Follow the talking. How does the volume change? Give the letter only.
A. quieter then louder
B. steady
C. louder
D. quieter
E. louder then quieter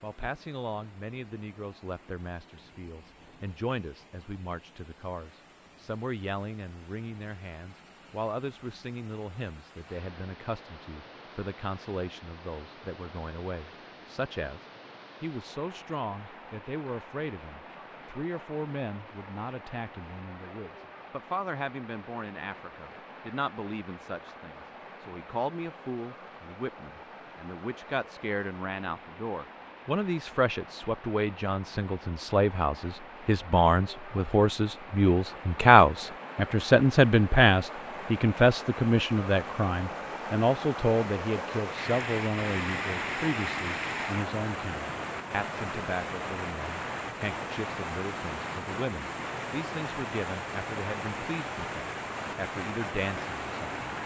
E.